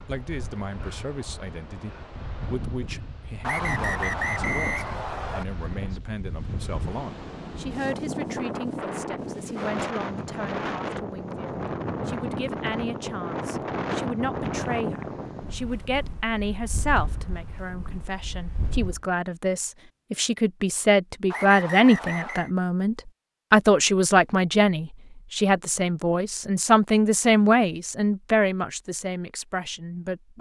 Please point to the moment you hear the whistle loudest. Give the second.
4 s.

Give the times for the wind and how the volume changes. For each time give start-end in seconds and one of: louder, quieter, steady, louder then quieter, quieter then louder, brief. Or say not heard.
0.0-19.0 louder then quieter.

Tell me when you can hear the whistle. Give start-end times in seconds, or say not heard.
3.4-5.5, 21.3-22.5.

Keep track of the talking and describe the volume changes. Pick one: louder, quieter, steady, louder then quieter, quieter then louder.
louder.